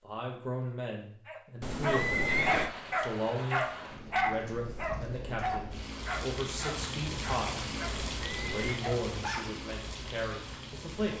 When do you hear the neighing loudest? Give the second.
2 s.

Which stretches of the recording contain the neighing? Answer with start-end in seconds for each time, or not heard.
1.6-2.7, 7.9-8.8.